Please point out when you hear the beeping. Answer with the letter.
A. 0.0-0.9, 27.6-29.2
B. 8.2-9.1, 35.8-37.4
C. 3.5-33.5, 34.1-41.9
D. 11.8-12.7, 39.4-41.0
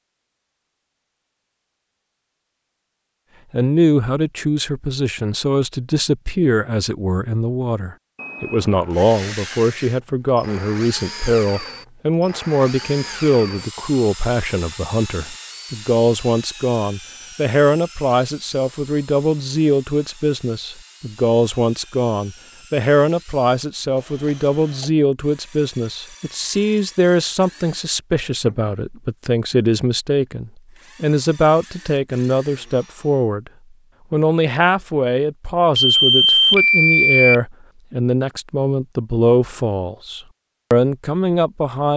B.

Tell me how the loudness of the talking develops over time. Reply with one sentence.
The loudness of the talking stays about the same.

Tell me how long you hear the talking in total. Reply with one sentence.
You can hear the talking for 38 seconds altogether.